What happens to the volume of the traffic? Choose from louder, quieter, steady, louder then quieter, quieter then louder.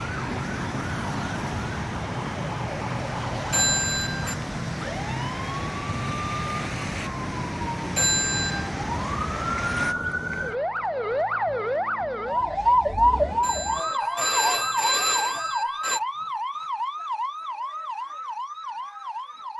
steady.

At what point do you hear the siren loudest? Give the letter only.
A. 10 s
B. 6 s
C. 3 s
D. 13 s
D.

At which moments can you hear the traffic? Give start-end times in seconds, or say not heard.
0.0-9.9.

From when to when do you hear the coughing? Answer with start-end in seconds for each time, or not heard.
not heard.